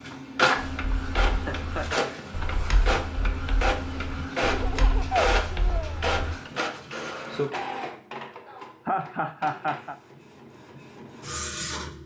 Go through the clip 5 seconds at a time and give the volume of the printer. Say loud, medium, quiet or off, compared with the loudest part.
loud, loud, medium.